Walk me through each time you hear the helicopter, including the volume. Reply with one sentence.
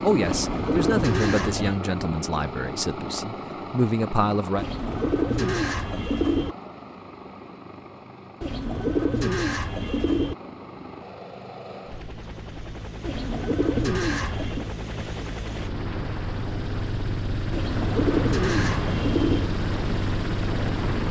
You can hear the helicopter from 0.0 to 21.0 s, getting quieter then louder.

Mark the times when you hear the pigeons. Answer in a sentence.
You can hear the pigeons from 0.2 to 1.8 s, from 4.5 to 6.5 s, from 8.4 to 10.3 s, from 13.0 to 14.7 s and from 17.5 to 19.5 s.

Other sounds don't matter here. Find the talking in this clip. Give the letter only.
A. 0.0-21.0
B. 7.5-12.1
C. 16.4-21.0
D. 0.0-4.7
D.